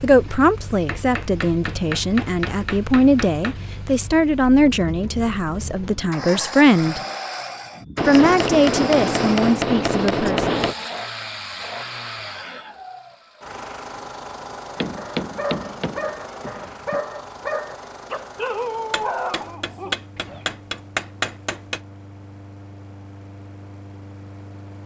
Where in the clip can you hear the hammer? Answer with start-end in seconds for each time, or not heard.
0.8-3.6, 8.0-10.8, 14.8-17.0, 18.9-21.8.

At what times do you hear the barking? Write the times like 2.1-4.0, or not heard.
14.9-20.4.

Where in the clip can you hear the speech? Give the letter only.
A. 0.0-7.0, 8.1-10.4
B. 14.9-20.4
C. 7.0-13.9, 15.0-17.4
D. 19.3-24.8
A.